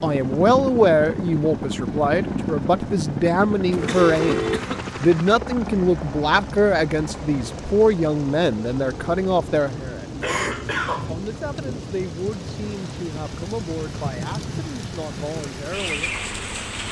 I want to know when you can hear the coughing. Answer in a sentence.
The coughing can be heard from 3.6 to 4.9 s and from 10.2 to 11.1 s.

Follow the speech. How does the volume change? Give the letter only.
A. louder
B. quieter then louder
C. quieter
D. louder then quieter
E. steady
C.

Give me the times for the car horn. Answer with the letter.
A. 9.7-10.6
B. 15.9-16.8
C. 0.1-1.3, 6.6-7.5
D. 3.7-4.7
D.